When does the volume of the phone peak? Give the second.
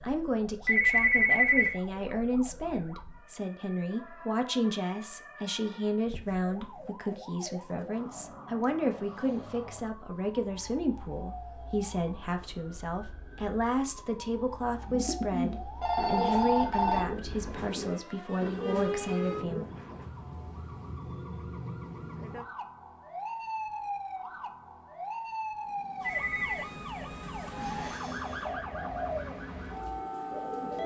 1 s.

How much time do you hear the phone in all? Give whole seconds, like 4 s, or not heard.
3 s.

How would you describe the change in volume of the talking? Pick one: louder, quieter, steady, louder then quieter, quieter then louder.
steady.